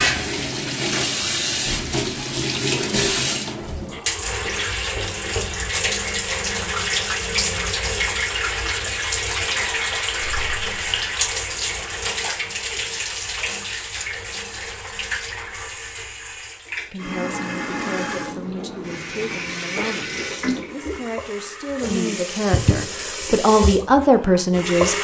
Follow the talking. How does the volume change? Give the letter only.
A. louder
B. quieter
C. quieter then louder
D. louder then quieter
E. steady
A.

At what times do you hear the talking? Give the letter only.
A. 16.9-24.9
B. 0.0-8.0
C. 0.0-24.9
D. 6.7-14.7
A.